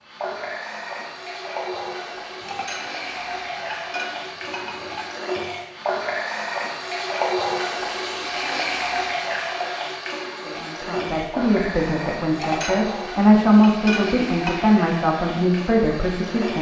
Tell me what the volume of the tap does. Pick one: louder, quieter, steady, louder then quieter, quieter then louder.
louder then quieter.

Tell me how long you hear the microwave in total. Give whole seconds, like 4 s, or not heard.
not heard.